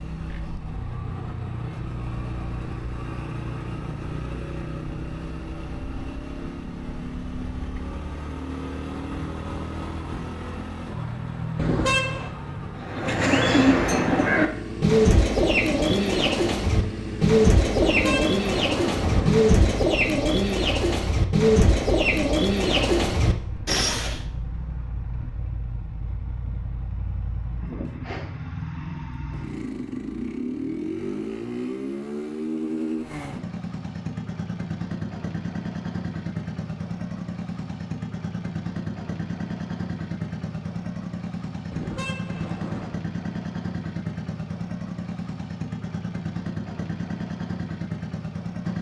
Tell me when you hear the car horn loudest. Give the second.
12 s.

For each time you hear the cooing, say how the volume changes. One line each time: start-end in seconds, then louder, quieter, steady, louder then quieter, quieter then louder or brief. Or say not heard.
12.8-24.2 steady.